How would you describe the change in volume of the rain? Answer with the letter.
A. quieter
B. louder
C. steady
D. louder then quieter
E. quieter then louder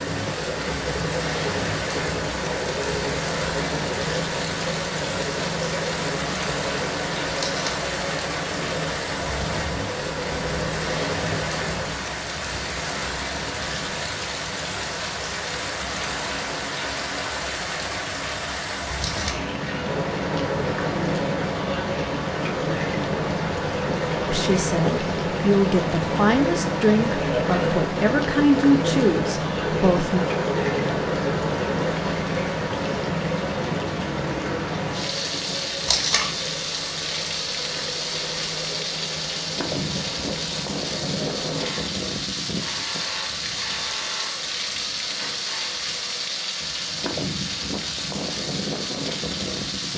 C.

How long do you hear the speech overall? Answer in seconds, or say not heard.
6 s.